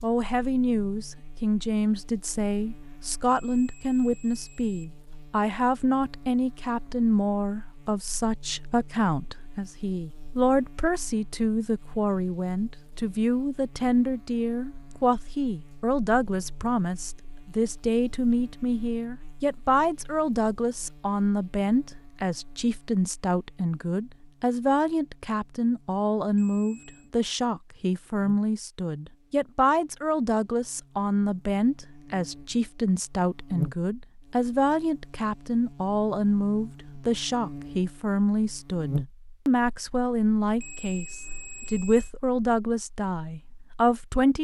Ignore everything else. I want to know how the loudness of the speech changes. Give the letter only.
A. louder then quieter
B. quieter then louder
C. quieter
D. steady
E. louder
D.